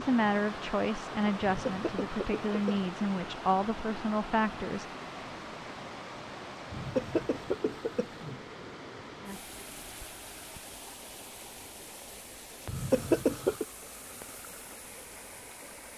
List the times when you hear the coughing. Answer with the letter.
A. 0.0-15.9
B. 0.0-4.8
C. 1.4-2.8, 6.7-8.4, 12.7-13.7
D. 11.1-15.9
C.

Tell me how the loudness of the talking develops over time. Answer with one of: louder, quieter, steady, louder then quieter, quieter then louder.
steady.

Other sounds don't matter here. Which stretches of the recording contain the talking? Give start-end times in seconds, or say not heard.
0.0-4.8.